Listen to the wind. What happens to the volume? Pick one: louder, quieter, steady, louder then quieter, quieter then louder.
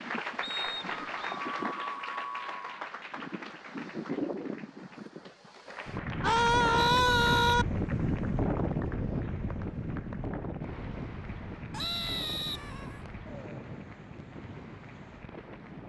louder then quieter.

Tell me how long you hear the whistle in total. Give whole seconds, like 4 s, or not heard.
3 s.